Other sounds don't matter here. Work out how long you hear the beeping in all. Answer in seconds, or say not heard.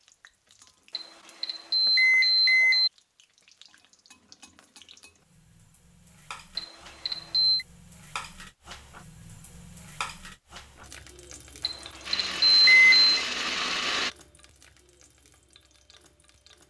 5 s.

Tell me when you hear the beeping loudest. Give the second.
13 s.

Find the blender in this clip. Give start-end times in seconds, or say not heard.
12.1-14.1.